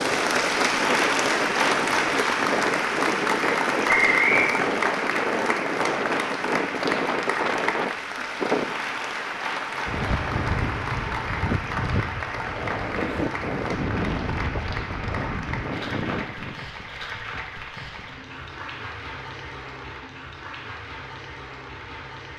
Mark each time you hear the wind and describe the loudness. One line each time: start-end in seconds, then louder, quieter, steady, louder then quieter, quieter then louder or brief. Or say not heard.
0.0-16.6 steady.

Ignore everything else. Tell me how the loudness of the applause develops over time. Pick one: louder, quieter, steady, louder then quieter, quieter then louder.
quieter.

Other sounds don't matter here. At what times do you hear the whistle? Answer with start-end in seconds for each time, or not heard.
3.9-4.5.